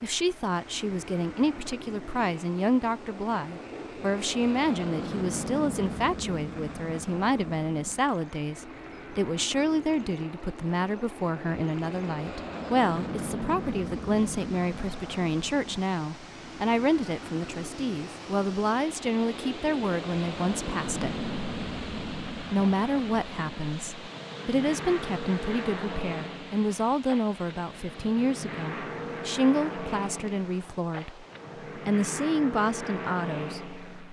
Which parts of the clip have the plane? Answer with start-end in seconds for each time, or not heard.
0.0-34.0.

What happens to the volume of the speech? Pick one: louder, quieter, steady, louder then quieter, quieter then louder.
steady.